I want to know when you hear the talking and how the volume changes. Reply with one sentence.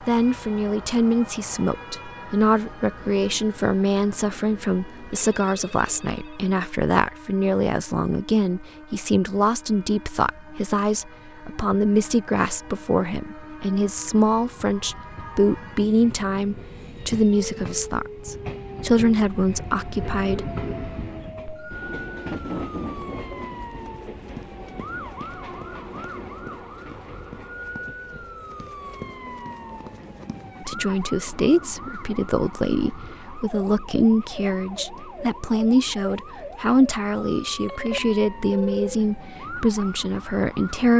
You can hear the talking from 0.1 to 20.5 s, at a steady volume; and from 30.6 to 40.9 s, at a steady volume.